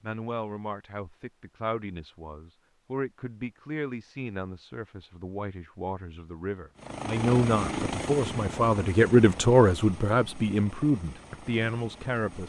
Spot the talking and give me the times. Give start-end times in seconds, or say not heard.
0.0-12.4.